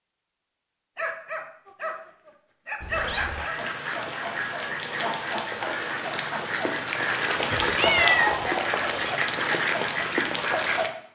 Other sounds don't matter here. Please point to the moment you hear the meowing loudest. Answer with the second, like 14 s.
8 s.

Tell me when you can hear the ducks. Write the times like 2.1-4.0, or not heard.
2.9-10.9.